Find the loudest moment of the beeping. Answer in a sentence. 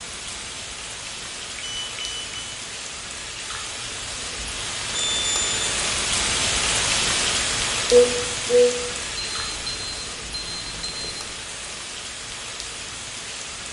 The volume of the beeping peaks at 5 seconds.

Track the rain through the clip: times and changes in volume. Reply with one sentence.
The rain can be heard from 0.0 to 13.6 s, getting louder then quieter.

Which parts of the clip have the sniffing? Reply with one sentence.
The sniffing can be heard from 7.9 to 8.8 s.